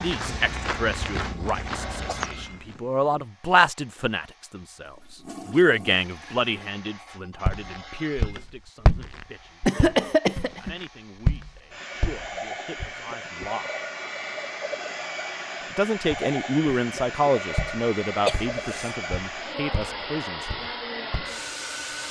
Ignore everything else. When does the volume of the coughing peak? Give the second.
10 s.